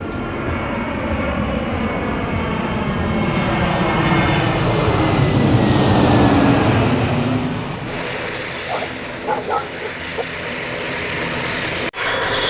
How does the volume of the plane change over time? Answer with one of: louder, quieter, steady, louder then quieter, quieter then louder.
louder then quieter.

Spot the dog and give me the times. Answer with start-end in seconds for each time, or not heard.
8.7-10.2.